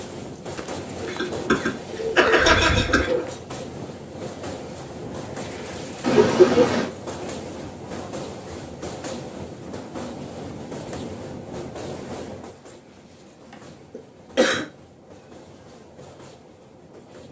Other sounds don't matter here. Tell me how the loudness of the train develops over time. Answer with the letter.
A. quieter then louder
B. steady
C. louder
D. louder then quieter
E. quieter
E.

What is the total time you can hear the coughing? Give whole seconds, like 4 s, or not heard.
4 s.